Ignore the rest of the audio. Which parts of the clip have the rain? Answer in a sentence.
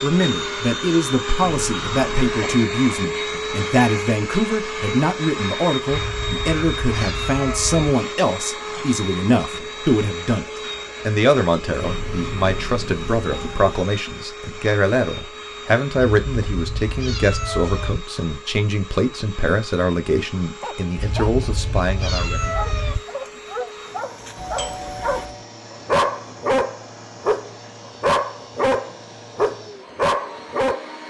You can't hear the rain here.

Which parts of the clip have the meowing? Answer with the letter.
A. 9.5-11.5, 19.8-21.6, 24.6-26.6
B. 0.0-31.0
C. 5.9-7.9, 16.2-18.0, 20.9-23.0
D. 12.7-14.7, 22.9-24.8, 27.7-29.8
C.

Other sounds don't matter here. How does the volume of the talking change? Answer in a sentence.
The loudness of the talking stays about the same.